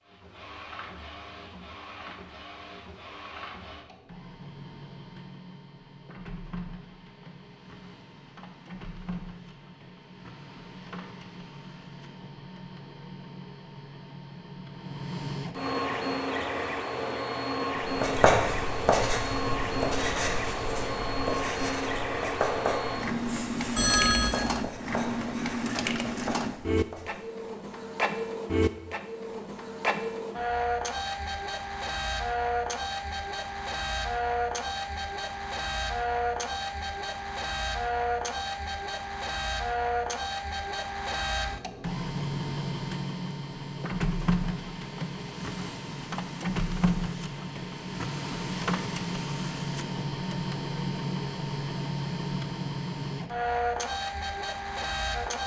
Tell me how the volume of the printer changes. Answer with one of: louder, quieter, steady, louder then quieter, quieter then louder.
louder.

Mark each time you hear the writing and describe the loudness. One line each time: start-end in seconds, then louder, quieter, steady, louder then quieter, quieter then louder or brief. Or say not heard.
17.8-27.2 quieter.